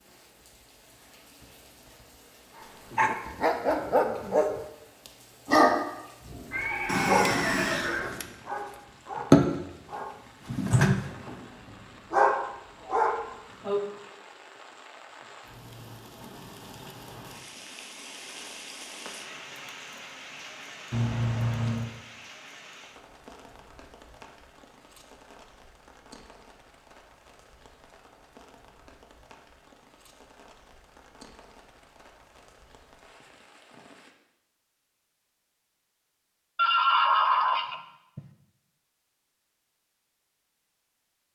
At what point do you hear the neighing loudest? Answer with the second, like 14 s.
37 s.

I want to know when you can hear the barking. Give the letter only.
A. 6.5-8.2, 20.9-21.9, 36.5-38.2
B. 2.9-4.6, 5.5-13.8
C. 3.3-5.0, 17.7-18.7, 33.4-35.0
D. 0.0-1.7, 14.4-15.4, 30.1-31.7
B.